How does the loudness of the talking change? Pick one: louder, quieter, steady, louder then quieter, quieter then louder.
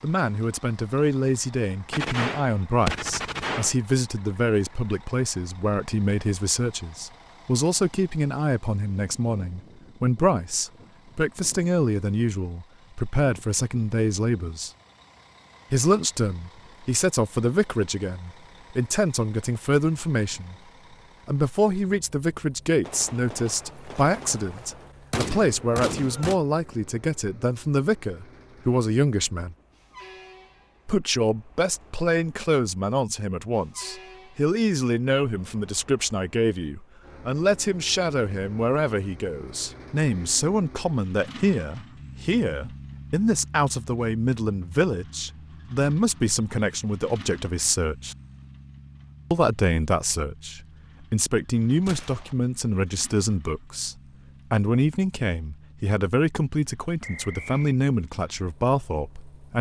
steady.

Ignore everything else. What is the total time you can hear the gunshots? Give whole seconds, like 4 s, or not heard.
6 s.